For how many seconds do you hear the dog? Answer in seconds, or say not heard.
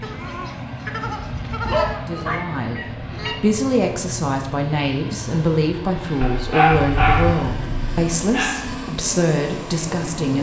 4 s.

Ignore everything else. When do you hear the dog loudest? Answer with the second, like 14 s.
7 s.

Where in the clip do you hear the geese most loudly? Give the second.
2 s.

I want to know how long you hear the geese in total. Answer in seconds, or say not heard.
3 s.